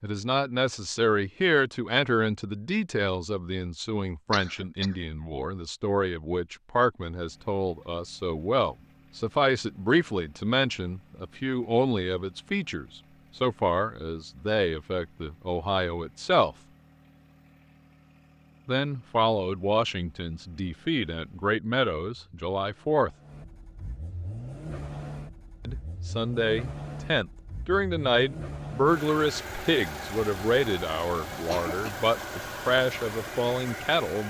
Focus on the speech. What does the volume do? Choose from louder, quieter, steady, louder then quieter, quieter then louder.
steady.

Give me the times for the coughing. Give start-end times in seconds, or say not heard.
4.3-5.0, 31.3-31.9.